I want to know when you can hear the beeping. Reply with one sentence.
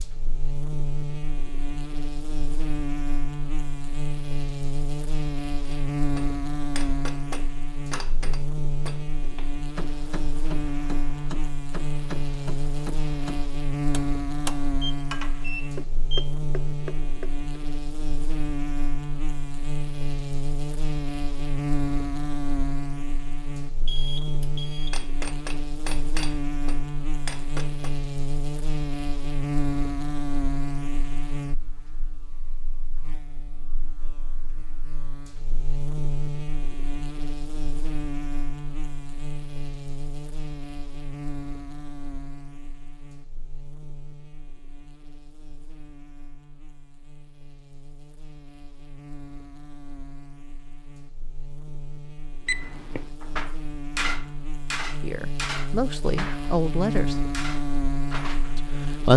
The beeping can be heard from 14.8 to 16.4 s, from 23.9 to 25.1 s and from 52.5 to 53.0 s.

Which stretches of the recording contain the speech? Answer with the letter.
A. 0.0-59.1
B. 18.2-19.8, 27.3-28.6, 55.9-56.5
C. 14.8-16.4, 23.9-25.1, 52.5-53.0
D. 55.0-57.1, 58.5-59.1
D.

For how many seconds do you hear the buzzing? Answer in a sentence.
The buzzing can be heard for 59 seconds in total.